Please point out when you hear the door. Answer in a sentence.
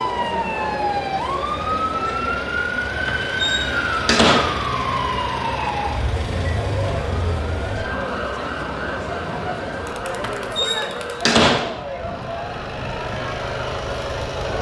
The door can be heard from 3.0 to 4.7 s and from 10.2 to 11.8 s.